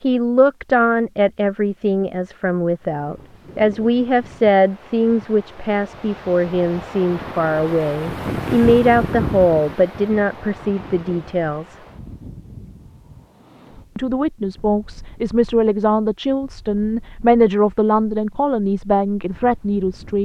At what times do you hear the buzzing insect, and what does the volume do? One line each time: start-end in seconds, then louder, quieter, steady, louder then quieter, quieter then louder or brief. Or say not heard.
not heard.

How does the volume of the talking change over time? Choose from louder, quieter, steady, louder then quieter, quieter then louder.
steady.